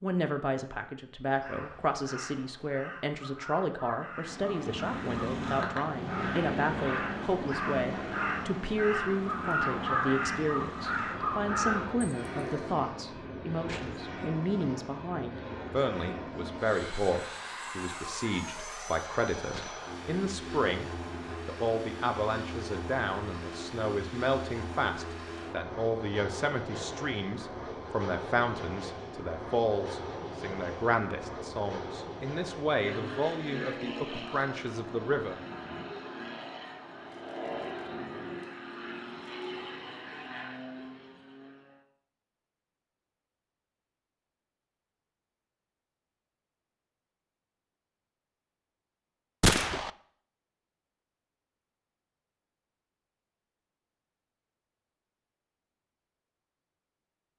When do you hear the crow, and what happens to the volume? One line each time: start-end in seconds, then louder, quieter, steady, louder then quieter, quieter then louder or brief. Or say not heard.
1.2-12.8 louder.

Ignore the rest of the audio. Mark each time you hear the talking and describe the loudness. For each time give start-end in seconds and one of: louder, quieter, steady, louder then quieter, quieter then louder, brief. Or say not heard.
0.0-35.4 steady.